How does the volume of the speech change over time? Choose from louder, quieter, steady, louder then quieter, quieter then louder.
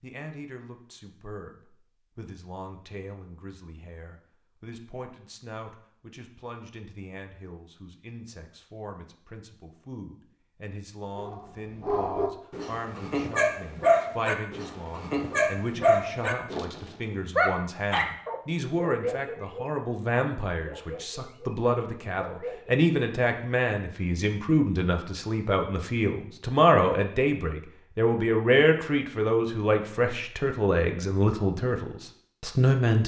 louder.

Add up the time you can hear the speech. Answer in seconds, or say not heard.
33 s.